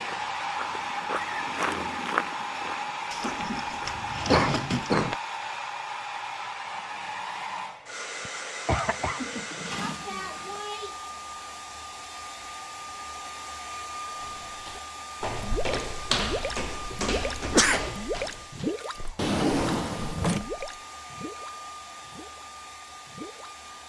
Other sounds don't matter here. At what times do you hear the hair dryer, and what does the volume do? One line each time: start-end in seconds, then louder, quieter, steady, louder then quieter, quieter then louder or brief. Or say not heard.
0.0-23.8 quieter.